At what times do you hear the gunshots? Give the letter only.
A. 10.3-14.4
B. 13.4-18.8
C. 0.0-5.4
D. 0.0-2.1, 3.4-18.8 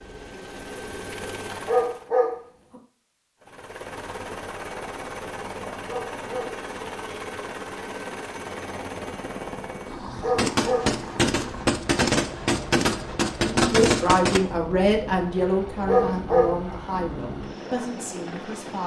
A.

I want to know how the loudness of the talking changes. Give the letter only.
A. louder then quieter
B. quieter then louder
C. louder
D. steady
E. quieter
E.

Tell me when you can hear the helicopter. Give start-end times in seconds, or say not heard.
0.0-2.1, 3.4-18.8.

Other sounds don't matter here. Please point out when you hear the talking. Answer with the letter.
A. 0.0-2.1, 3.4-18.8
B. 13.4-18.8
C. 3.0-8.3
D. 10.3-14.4
B.